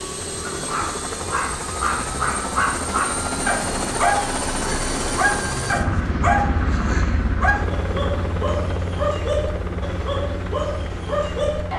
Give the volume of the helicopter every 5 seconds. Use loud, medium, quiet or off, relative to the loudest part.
loud, loud, medium.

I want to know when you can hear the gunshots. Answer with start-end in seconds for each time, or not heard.
not heard.